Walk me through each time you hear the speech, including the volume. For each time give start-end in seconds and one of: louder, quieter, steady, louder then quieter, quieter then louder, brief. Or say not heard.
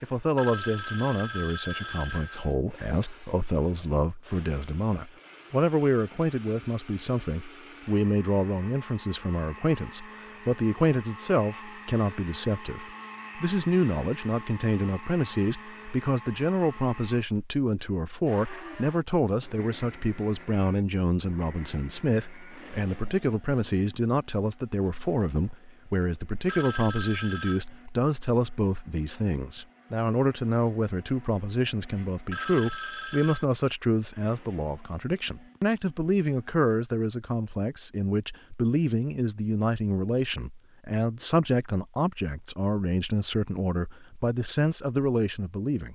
0.0-45.8 steady.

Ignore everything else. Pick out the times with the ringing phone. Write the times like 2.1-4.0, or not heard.
0.3-2.6, 26.4-27.6, 32.3-33.5.